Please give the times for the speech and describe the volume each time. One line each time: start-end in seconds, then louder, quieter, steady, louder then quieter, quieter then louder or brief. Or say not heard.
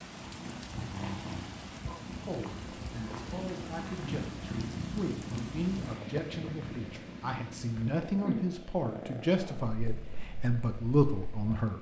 2.2-11.7 louder.